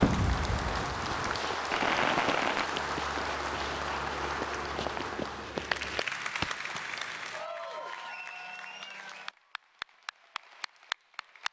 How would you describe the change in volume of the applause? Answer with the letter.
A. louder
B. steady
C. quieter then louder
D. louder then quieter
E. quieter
E.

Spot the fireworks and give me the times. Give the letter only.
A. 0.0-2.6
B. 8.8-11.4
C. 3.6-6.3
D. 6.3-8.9
A.